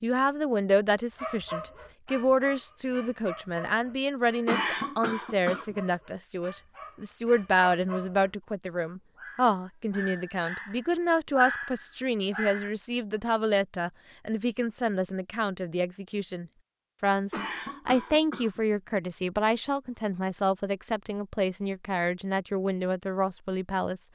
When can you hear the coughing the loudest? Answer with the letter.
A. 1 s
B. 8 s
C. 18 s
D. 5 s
D.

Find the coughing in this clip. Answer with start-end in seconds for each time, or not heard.
4.5-5.8, 17.3-18.6.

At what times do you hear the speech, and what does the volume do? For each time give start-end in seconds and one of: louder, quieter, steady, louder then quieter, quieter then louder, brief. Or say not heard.
0.0-24.0 steady.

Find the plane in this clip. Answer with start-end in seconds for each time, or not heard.
not heard.